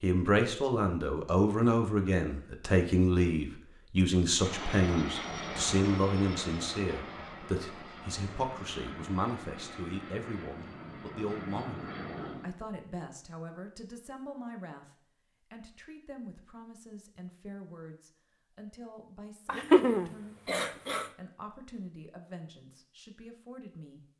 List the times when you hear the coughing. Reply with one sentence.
The coughing can be heard from 19.4 to 21.1 s.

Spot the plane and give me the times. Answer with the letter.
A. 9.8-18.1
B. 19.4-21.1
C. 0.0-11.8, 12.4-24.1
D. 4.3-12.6
D.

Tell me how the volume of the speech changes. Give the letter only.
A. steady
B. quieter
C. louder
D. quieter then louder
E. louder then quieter
B.